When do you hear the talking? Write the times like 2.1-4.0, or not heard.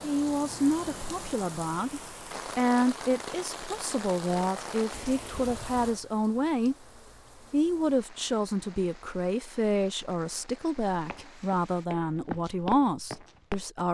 0.0-6.8, 7.5-13.8.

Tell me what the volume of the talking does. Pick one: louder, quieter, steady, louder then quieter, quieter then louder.
steady.